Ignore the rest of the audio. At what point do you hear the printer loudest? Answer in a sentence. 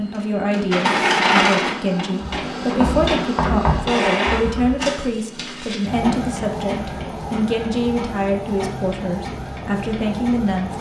The volume of the printer peaks at 1 second.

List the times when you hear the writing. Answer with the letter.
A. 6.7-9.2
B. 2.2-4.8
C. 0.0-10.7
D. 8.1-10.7
B.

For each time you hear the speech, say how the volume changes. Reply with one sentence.
You can hear the speech from 0.0 to 10.7 s, at a steady volume.